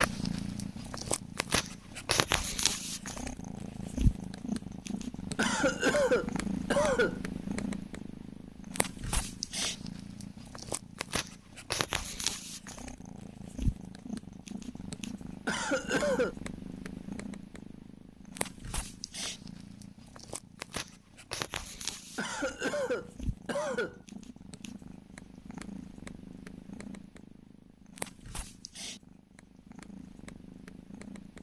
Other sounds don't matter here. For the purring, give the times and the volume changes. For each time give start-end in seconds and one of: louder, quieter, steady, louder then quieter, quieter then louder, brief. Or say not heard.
0.0-31.3 quieter.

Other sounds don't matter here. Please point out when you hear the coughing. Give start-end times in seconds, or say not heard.
5.3-7.2, 15.4-16.4, 22.1-24.0.